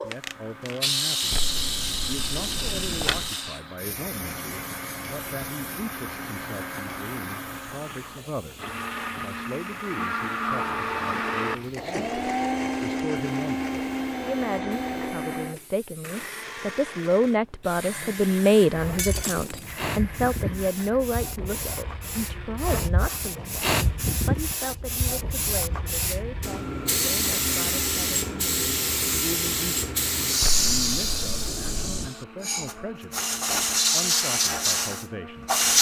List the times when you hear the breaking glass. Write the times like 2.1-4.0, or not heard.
18.9-19.7.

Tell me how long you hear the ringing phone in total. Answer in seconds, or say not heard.
4 s.